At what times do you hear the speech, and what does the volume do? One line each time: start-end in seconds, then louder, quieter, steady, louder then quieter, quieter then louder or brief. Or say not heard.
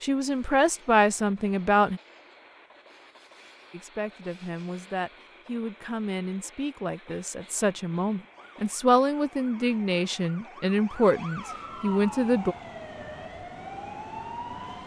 0.0-2.0 brief
3.7-12.6 louder.